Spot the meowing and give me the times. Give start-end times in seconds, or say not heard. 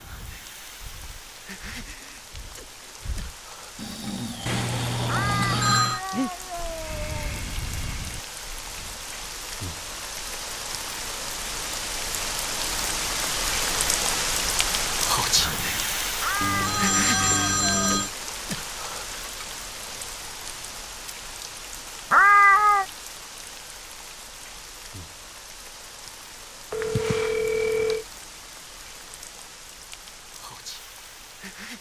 5.0-7.4, 16.2-17.9, 22.1-22.9.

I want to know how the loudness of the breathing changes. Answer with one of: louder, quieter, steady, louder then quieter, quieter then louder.
louder then quieter.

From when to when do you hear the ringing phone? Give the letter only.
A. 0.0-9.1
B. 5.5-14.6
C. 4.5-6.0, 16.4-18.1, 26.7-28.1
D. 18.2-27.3
C.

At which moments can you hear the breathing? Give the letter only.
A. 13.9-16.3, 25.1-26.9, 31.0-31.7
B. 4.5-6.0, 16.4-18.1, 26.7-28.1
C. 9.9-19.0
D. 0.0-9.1
D.